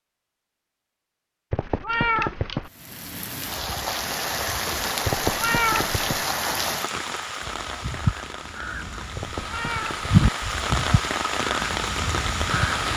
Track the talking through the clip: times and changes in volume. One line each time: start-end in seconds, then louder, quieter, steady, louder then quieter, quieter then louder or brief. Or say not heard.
not heard.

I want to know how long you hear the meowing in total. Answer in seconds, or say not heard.
3 s.